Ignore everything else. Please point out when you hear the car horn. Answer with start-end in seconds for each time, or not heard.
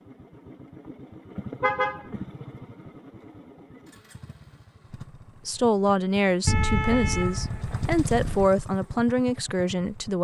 1.6-2.1, 6.5-8.5.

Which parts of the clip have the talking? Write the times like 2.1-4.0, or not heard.
5.5-10.1.